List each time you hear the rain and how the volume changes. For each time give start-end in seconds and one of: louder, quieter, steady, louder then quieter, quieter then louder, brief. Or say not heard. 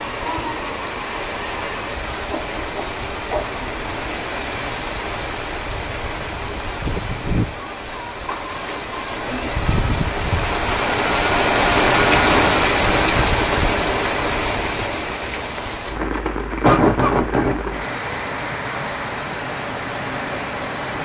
0.0-20.9 louder then quieter.